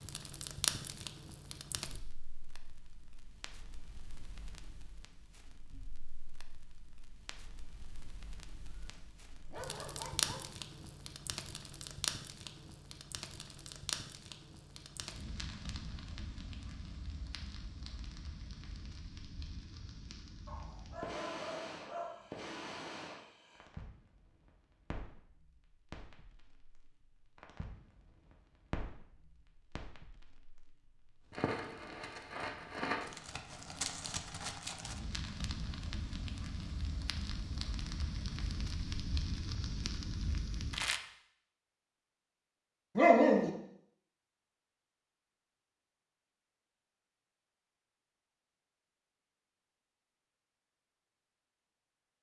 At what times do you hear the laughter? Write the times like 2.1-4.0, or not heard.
not heard.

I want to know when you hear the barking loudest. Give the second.
43 s.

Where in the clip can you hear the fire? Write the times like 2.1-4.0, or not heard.
0.0-41.0.